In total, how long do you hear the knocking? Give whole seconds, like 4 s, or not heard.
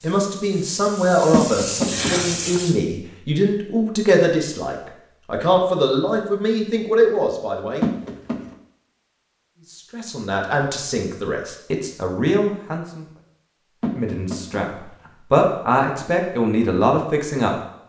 3 s.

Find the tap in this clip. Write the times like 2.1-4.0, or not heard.
0.0-2.8.